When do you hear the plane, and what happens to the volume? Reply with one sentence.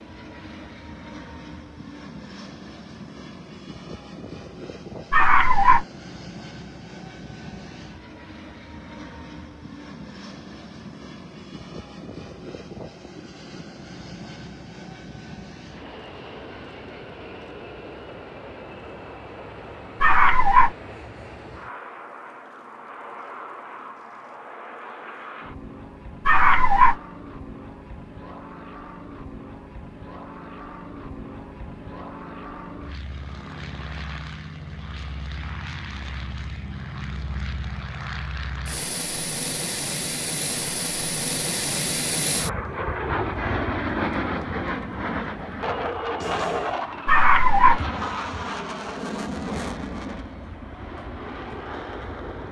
You can hear the plane from 0.0 to 52.4 s, getting louder.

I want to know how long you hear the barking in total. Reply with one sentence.
You can hear the barking for 3 seconds altogether.